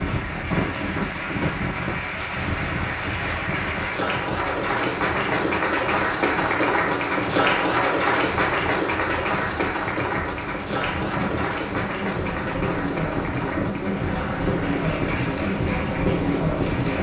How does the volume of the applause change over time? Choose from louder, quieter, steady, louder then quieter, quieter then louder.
louder then quieter.